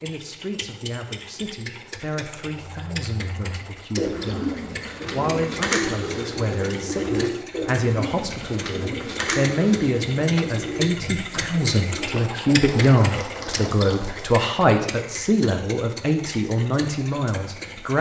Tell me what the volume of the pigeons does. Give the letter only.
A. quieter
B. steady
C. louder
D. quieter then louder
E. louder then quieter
A.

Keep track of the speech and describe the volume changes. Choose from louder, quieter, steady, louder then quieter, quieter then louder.
louder.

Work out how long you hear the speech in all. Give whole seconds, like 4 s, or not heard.
18 s.